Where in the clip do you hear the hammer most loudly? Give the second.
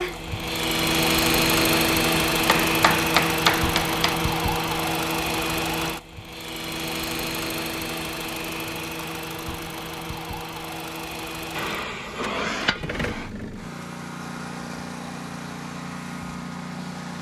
3 s.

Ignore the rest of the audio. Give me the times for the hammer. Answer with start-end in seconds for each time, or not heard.
2.3-4.2, 11.6-13.3.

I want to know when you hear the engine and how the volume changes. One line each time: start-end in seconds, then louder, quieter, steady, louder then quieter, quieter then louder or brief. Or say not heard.
0.0-17.1 quieter.